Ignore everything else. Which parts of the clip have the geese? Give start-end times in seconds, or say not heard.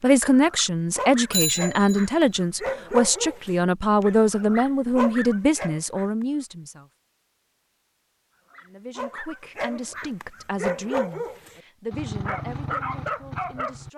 not heard.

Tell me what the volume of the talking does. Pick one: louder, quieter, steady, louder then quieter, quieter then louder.
quieter.